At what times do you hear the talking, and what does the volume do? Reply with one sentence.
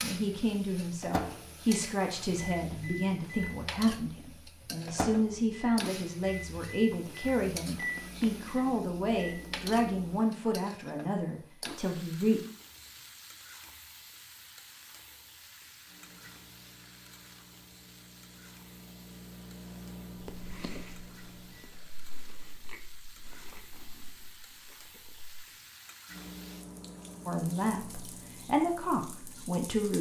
You can hear the talking from 0.0 to 12.4 s, at a steady volume; and briefly from 27.2 to 29.9 s.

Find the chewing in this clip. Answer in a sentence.
You can hear the chewing from 20.2 to 25.4 s.